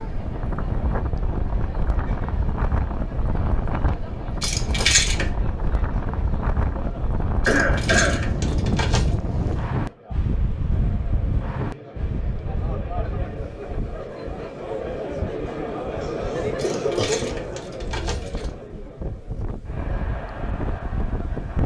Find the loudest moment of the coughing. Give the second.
8 s.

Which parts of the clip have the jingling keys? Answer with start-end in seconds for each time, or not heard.
4.4-5.3, 7.5-9.2, 16.6-18.5.